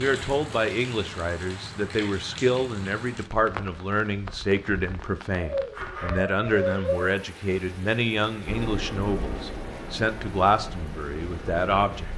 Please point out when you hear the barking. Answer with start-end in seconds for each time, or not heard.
5.3-7.1.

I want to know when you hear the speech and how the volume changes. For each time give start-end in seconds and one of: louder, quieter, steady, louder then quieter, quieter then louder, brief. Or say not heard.
0.0-12.1 steady.